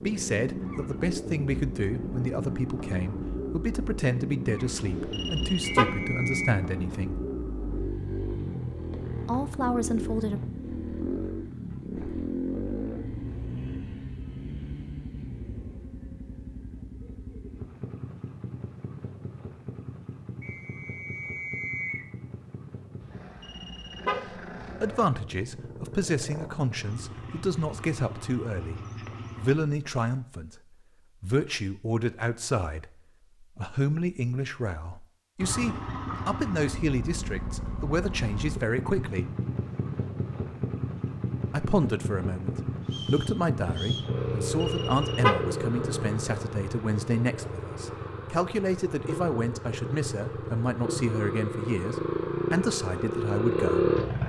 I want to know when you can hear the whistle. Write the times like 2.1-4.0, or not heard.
5.8-6.5, 20.4-22.1, 42.9-44.1.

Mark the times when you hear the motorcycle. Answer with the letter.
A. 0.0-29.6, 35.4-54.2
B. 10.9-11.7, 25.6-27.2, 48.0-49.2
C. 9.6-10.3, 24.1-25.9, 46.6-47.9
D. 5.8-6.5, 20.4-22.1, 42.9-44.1
A.